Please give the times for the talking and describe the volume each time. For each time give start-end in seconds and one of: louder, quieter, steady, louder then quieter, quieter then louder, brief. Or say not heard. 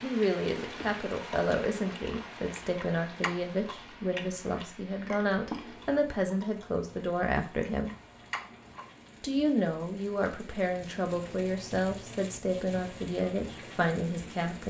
0.0-7.9 steady
9.2-14.6 steady.